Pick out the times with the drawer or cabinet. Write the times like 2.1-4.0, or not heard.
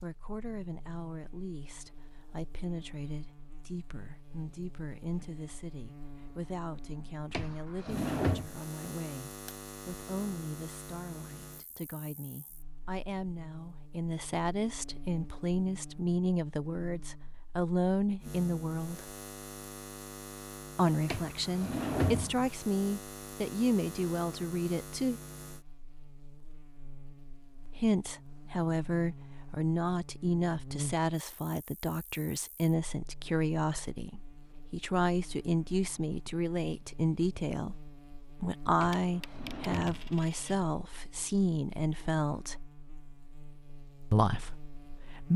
7.3-8.5, 21.1-22.5, 38.8-40.2.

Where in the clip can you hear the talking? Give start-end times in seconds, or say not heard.
0.0-19.1, 20.8-25.2, 27.6-42.5, 44.1-45.3.